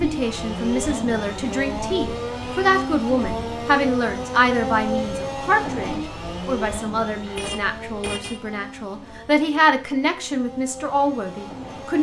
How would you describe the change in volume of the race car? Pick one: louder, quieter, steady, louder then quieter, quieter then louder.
quieter.